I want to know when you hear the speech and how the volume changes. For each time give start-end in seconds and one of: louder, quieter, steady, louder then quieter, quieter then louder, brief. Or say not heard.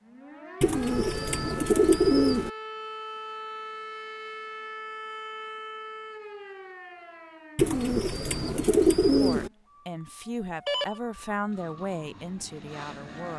9.2-13.3 louder then quieter.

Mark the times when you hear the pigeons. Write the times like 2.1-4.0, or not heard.
0.6-2.5, 7.5-9.5.